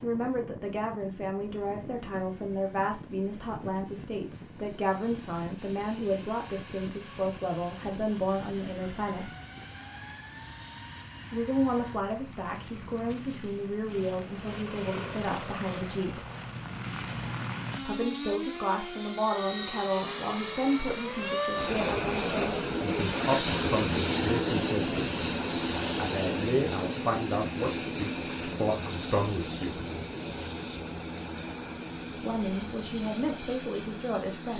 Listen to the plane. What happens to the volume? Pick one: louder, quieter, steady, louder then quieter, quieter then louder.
louder then quieter.